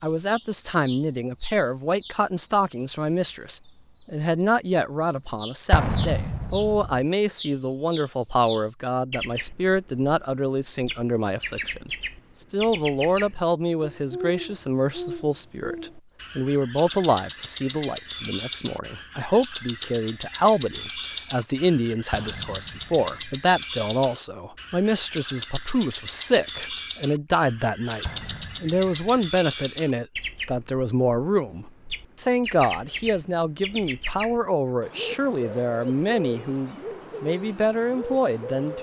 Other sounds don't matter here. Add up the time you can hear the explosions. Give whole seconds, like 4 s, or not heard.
4 s.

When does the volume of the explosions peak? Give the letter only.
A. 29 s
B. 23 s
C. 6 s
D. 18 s
C.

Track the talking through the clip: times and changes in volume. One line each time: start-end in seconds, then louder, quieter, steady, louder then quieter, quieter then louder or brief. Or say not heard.
0.0-38.7 steady.